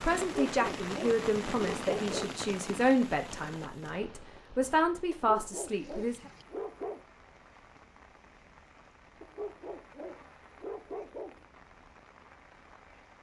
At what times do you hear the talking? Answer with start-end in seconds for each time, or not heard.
0.0-6.2.